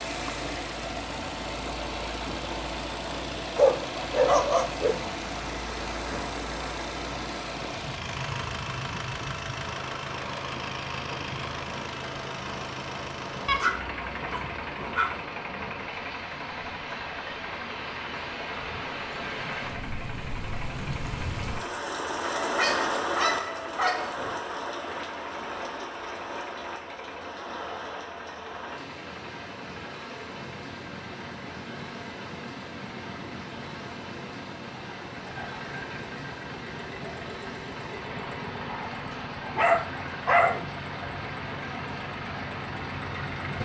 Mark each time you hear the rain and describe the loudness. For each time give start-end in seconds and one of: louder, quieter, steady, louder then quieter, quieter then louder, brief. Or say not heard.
0.0-43.6 louder then quieter.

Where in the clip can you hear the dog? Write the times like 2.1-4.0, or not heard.
3.5-5.2, 13.4-15.2, 22.4-24.1, 39.5-40.6.